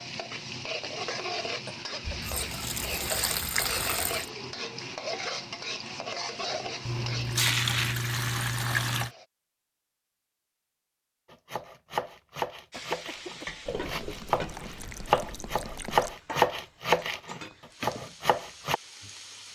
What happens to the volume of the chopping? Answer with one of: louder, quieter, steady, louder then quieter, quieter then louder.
louder then quieter.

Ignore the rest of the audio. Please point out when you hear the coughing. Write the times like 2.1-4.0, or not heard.
1.6-2.4, 12.7-13.5.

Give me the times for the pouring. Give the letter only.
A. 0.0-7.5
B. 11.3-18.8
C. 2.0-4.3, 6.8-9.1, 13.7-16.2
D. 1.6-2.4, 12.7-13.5
C.